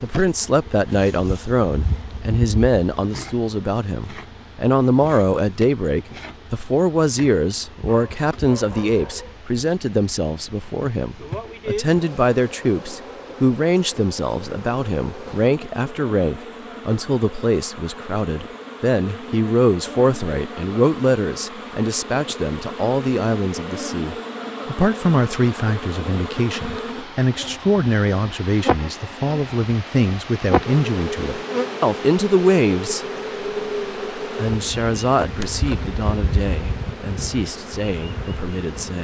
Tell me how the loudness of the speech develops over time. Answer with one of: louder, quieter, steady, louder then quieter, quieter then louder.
steady.